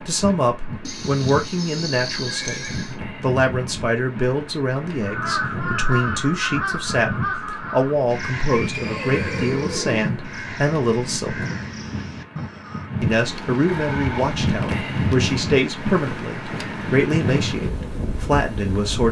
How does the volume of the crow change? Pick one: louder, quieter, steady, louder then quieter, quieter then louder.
quieter.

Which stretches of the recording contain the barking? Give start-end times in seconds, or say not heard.
not heard.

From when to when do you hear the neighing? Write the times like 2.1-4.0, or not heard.
0.8-3.0, 8.5-10.3, 13.7-14.6.